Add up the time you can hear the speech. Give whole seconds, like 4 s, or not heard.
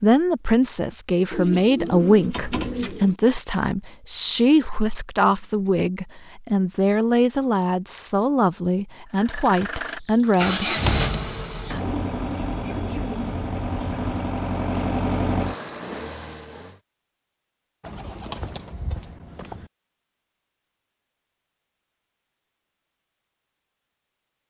11 s.